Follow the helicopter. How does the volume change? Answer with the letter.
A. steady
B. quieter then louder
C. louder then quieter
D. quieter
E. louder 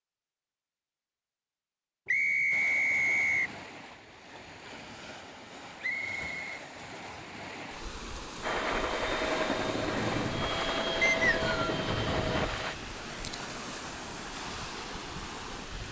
A.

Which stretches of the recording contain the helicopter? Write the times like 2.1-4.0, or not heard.
8.4-12.8.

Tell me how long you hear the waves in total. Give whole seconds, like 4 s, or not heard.
13 s.